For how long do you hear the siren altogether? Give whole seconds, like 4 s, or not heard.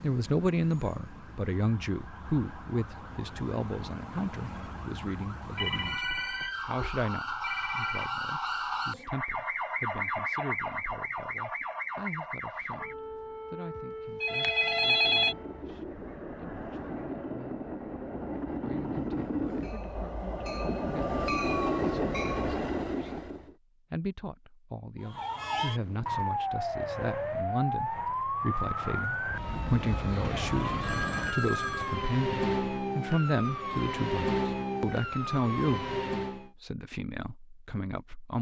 27 s.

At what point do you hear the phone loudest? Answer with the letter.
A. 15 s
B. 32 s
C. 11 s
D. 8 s
A.